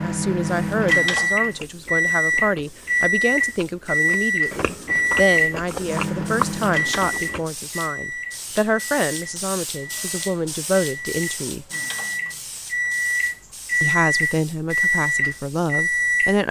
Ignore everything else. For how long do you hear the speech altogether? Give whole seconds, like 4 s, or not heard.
14 s.